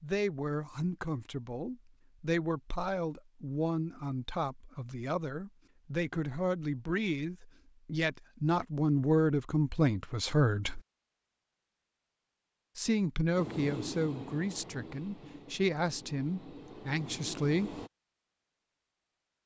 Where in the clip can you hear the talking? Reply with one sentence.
You can hear the talking from 0.0 to 10.8 s and from 12.8 to 17.8 s.